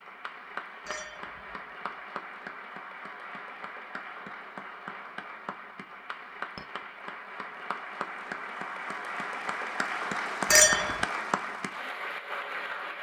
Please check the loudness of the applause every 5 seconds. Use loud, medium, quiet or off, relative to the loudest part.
medium, medium, loud.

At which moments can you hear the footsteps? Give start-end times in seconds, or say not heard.
not heard.